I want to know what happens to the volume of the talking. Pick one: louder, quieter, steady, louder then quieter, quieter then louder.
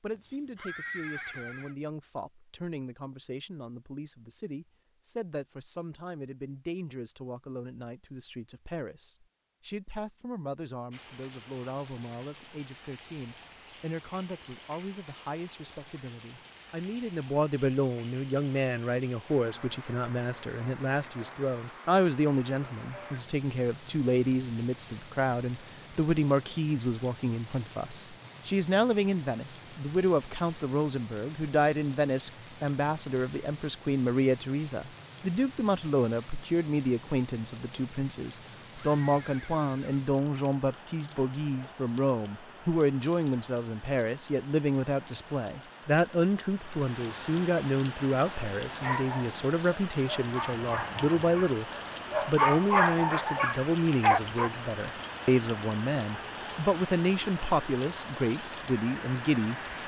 louder.